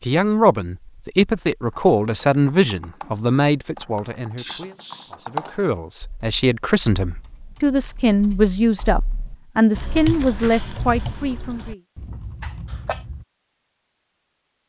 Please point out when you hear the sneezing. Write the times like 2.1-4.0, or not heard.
4.3-5.2, 12.4-13.0.